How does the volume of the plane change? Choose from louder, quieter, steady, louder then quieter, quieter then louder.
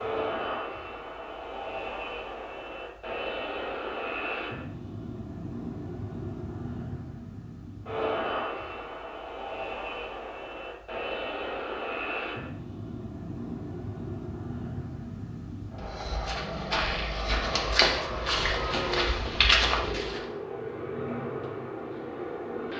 steady.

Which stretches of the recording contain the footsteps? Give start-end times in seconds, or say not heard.
15.8-20.2.